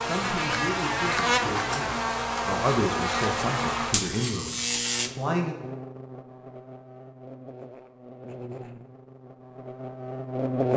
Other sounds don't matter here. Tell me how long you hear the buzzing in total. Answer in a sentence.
You can hear the buzzing for 11 seconds altogether.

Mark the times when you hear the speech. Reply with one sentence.
The speech can be heard from 0.0 to 5.5 s.